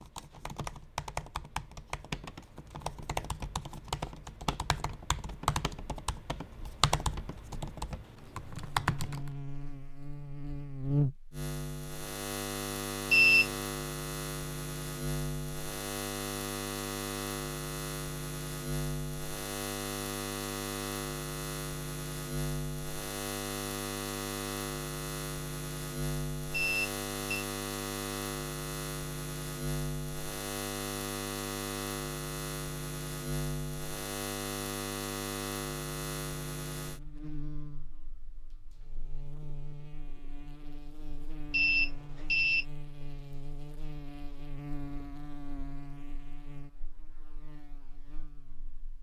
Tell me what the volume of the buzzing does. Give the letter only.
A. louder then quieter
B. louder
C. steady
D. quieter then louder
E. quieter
E.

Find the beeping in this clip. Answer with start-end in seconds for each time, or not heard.
13.1-13.5, 26.5-27.4, 41.5-42.6.